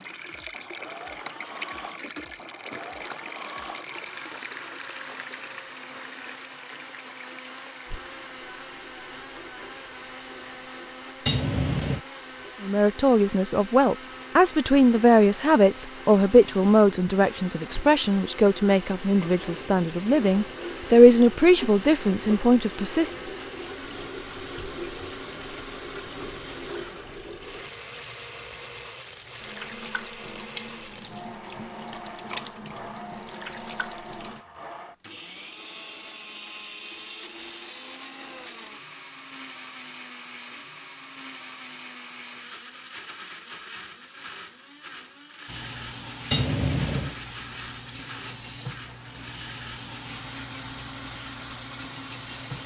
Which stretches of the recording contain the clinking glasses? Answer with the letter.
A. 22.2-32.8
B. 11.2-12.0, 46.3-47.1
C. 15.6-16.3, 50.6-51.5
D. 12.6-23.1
B.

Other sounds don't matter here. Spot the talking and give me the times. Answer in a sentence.
You can hear the talking from 12.6 to 23.1 s.